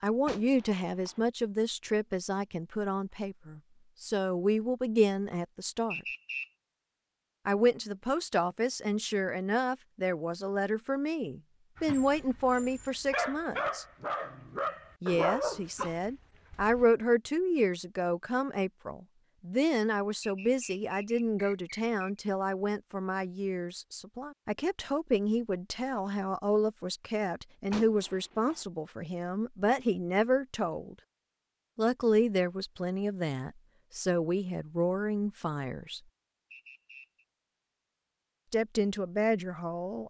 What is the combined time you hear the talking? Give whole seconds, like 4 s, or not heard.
34 s.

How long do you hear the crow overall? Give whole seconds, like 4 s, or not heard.
not heard.